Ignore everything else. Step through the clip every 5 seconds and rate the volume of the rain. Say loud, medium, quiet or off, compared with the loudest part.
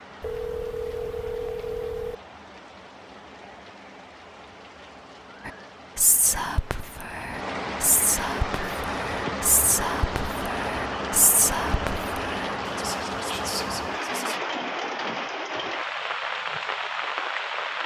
quiet, loud, loud, loud.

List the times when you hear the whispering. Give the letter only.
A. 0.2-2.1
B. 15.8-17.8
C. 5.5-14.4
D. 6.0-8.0
C.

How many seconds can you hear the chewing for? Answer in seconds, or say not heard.
not heard.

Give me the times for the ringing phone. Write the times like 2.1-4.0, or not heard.
0.2-2.1.